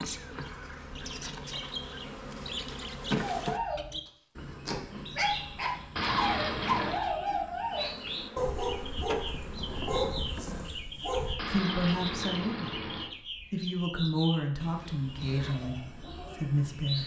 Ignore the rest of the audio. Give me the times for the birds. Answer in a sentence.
The birds can be heard from 0.0 to 17.0 s.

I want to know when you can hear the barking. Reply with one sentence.
The barking can be heard from 3.2 to 11.4 s.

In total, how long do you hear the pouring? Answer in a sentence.
The pouring can be heard for 3 seconds in total.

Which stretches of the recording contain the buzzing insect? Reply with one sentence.
You can hear the buzzing insect from 0.0 to 3.6 s and from 7.7 to 10.7 s.